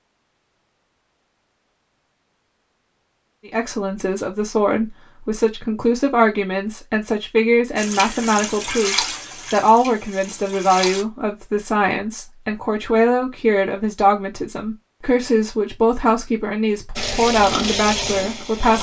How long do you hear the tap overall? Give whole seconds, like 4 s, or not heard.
5 s.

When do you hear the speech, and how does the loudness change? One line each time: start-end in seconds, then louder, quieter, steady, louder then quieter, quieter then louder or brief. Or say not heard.
3.5-18.7 steady.